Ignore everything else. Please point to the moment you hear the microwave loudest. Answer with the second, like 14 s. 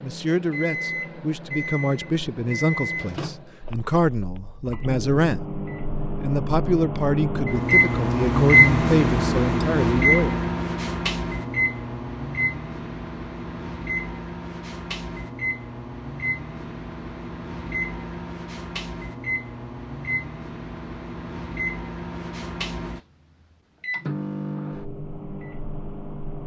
8 s.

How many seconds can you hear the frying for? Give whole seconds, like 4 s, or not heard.
not heard.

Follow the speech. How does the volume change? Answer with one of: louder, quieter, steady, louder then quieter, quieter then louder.
steady.